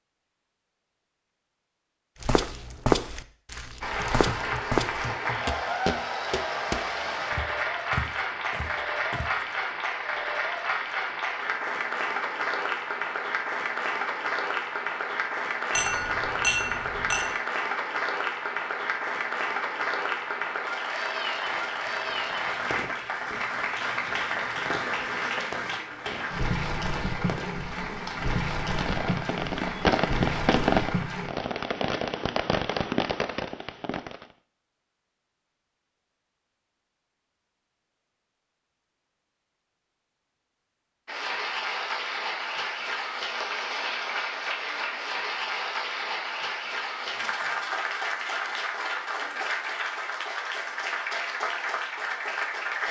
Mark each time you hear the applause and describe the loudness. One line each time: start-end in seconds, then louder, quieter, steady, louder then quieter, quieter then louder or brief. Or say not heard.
3.8-31.3 steady
41.0-52.8 steady.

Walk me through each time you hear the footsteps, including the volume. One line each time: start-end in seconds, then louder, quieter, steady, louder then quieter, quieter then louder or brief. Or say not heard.
2.2-9.4 quieter.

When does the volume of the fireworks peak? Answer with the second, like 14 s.
31 s.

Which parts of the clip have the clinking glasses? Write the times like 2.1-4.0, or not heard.
15.8-17.4.